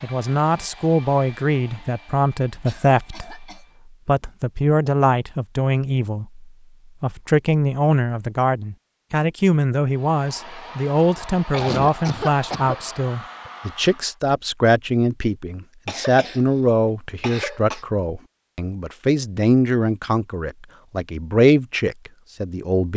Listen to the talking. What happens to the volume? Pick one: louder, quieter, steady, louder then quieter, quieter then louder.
steady.